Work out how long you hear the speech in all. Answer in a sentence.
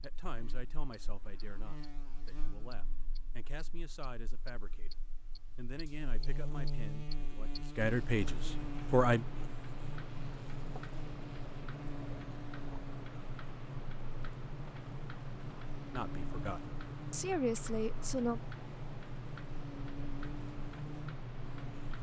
The speech can be heard for 11 seconds in total.